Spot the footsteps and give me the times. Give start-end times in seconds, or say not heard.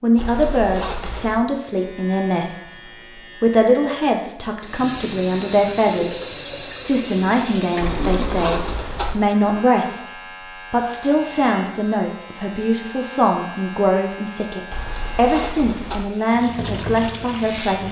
not heard.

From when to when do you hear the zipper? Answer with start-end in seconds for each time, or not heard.
0.1-1.4, 7.8-9.2, 14.7-16.1.